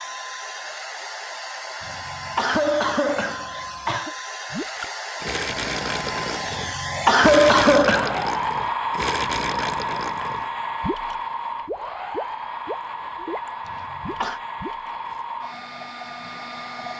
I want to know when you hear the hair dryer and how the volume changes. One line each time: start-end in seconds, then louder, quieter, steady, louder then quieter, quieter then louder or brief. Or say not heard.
0.0-16.9 louder then quieter.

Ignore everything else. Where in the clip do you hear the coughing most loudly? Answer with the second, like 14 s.
7 s.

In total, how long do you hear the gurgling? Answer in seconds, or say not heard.
11 s.